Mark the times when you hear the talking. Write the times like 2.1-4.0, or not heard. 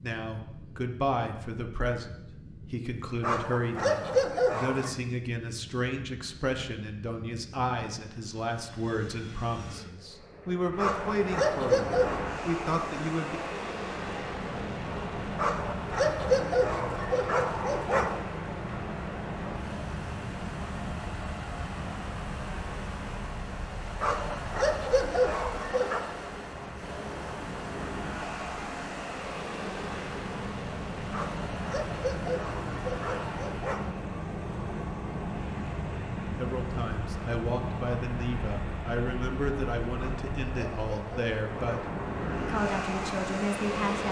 0.0-13.4, 36.4-44.0.